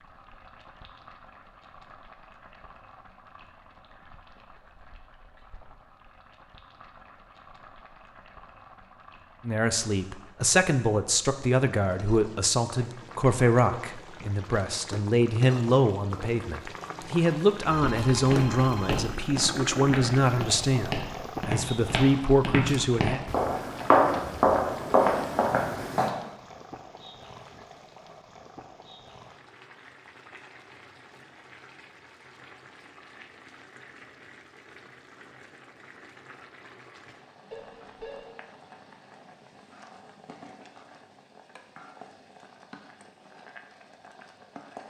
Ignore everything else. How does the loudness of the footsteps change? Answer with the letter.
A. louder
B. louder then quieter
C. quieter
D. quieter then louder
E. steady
A.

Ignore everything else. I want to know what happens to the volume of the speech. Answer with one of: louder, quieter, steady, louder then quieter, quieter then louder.
steady.